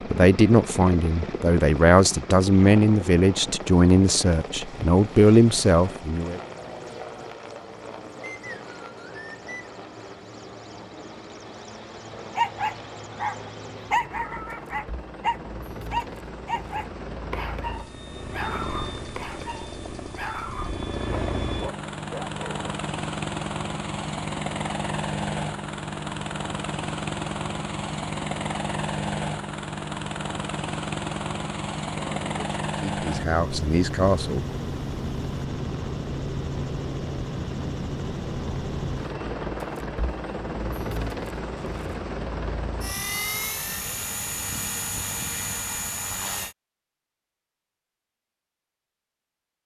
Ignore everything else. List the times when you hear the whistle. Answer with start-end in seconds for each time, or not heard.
8.2-9.7.